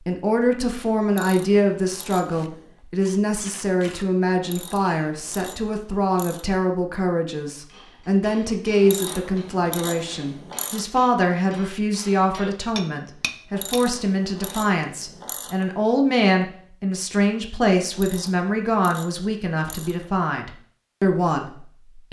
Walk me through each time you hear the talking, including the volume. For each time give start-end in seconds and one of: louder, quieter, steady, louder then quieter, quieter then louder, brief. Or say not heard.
0.1-22.0 steady.